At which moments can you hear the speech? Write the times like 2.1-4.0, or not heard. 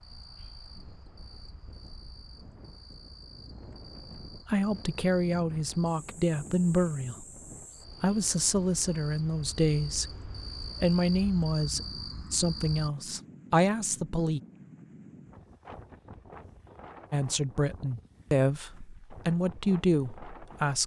4.5-7.2, 8.0-10.1, 10.7-14.4, 17.1-20.8.